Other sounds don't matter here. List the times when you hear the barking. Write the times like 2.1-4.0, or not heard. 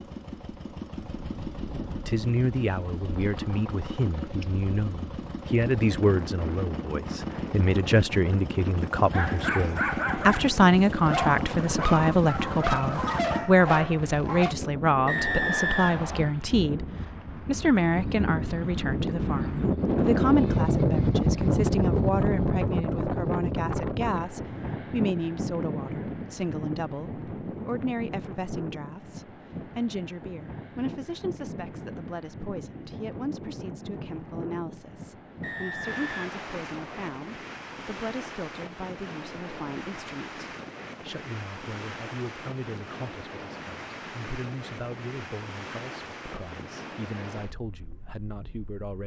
9.1-14.6.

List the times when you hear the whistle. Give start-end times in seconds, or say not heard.
15.1-16.2, 35.4-37.1.